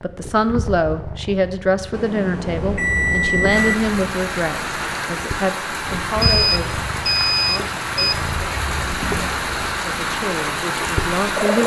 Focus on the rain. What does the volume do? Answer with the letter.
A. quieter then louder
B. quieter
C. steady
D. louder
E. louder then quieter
C.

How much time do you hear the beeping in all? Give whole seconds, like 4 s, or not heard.
4 s.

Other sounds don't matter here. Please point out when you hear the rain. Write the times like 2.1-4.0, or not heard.
3.5-11.6.